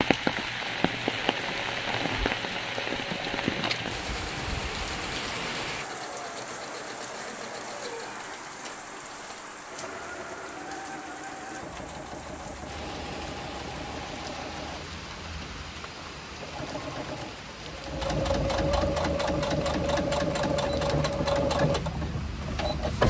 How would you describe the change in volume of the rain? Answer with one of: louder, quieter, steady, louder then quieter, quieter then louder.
quieter.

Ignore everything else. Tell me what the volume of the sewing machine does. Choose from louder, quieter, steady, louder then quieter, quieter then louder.
louder.